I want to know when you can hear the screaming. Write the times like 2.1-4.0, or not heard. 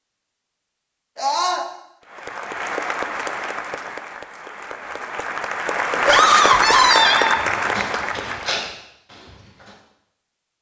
1.1-1.6, 6.0-7.4.